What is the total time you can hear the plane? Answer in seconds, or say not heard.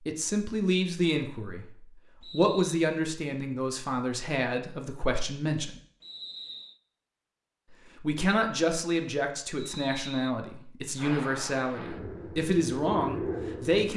3 s.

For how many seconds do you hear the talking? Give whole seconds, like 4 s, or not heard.
12 s.